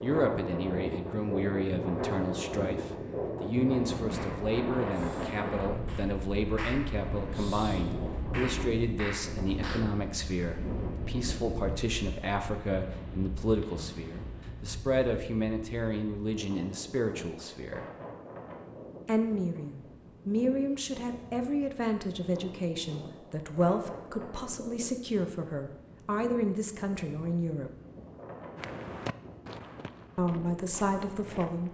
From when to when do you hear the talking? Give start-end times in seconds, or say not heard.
0.0-17.9, 19.1-27.7, 30.1-31.6.